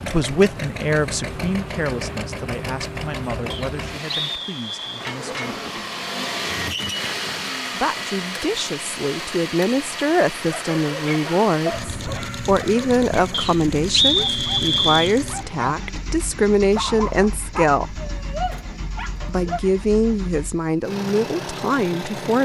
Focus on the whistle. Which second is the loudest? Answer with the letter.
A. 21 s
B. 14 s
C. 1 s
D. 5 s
B.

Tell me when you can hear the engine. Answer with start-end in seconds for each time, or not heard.
0.0-22.4.